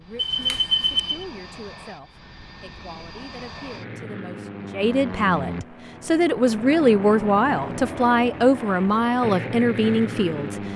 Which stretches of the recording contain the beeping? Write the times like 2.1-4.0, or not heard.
0.1-1.2.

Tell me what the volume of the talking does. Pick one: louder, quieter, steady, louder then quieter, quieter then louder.
louder.